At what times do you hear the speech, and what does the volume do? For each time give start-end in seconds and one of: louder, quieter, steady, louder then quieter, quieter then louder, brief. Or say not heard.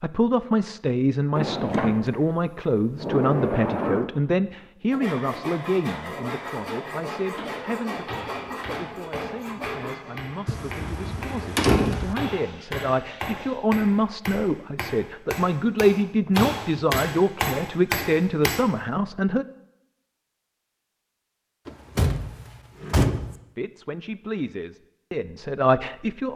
0.0-19.4 quieter then louder
23.6-26.3 brief.